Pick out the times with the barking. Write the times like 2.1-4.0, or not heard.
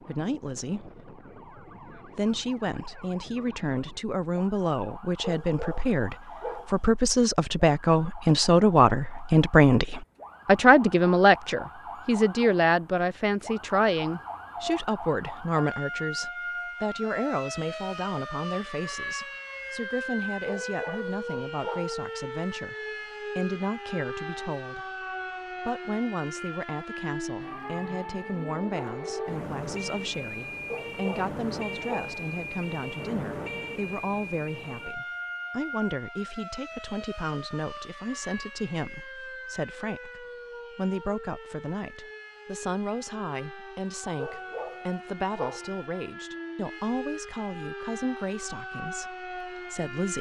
5.2-6.9, 20.4-22.1, 30.7-32.2, 44.1-45.8.